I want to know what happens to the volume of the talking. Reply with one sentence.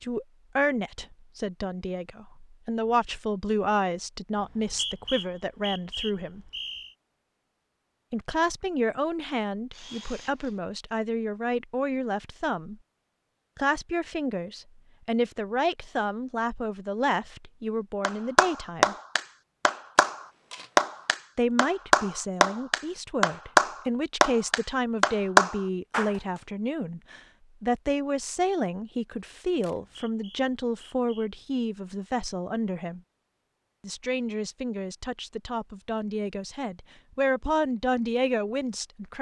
The volume of the talking stays about the same.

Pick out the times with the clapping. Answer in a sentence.
The clapping can be heard from 18.0 to 26.1 s.